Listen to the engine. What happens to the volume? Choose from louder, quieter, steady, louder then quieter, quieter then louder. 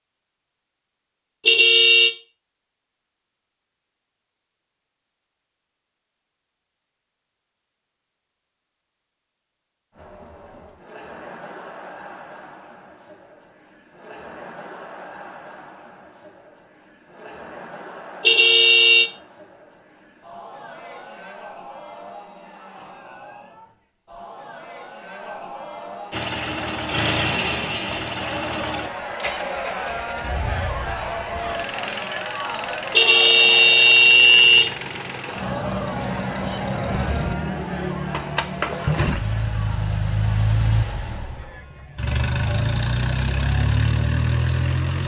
quieter then louder.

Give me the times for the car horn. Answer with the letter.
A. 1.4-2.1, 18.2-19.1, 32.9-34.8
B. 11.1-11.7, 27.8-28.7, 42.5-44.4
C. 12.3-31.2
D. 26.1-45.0
A.